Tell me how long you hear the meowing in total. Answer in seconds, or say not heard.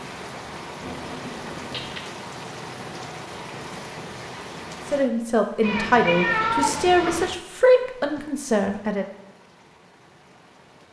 3 s.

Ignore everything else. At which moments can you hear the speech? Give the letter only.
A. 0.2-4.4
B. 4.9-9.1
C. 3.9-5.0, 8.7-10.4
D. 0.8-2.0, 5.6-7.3
B.